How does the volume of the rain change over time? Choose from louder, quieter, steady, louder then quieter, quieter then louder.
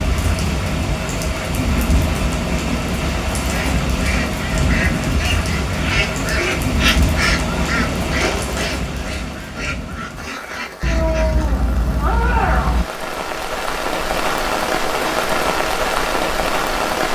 quieter then louder.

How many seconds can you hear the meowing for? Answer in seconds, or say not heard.
2 s.